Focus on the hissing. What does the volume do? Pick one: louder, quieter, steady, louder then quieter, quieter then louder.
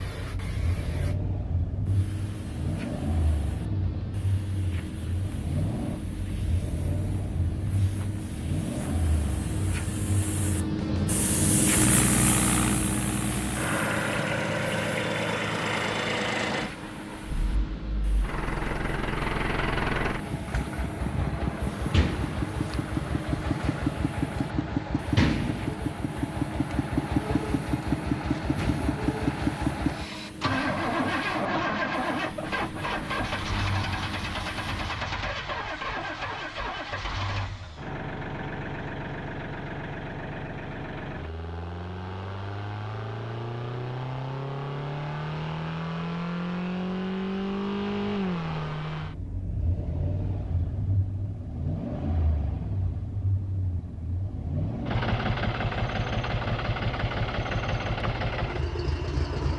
louder then quieter.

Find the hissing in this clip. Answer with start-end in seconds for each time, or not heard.
0.0-35.0.